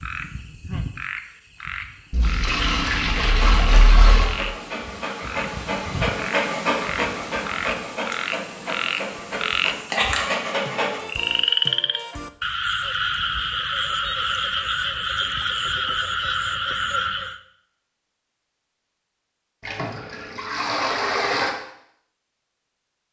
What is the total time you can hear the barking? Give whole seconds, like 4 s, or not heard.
8 s.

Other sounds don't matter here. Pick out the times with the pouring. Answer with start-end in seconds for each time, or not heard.
2.1-4.4, 19.6-21.5.